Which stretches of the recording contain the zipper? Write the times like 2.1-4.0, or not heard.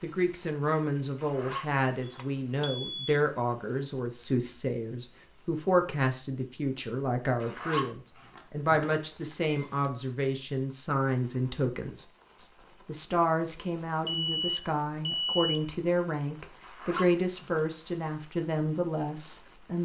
1.1-2.7, 7.4-8.9, 16.6-17.6.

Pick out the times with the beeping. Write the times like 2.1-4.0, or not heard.
2.0-3.1, 8.9-9.9, 14.1-15.7.